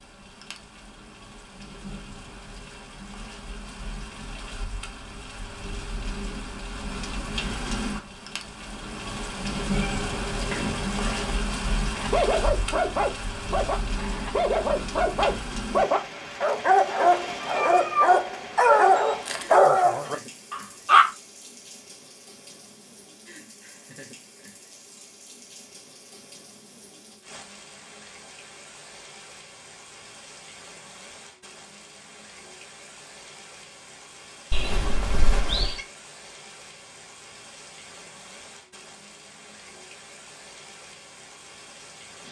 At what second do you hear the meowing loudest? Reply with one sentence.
The volume of the meowing peaks at 18 seconds.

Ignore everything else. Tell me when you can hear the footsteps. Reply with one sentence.
The footsteps can't be heard in this clip.